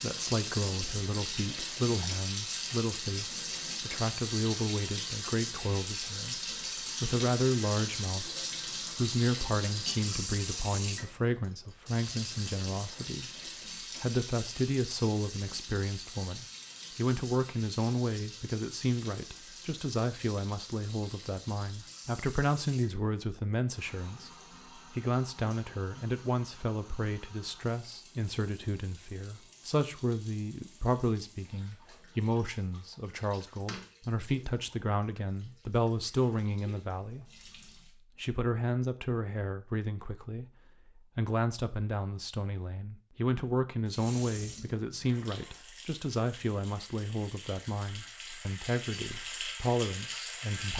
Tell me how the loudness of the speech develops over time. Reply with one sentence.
The loudness of the speech stays about the same.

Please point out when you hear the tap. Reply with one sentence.
The tap can be heard from 0.0 to 38.0 s and from 43.9 to 50.7 s.